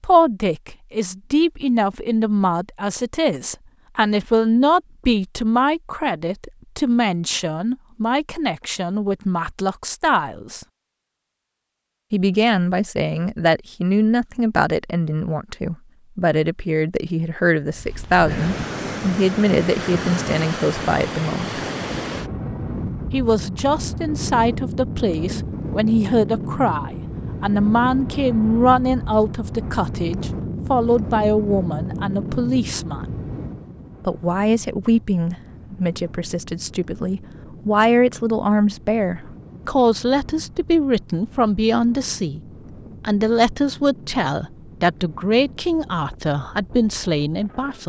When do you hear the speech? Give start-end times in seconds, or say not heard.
0.0-10.7, 12.1-21.6, 23.1-33.1, 34.0-42.4, 43.0-47.8.